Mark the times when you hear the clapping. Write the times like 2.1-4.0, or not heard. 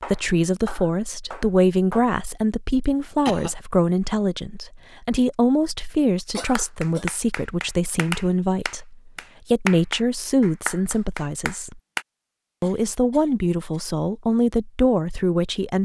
0.0-2.0, 6.5-12.1.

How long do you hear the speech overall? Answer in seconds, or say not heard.
15 s.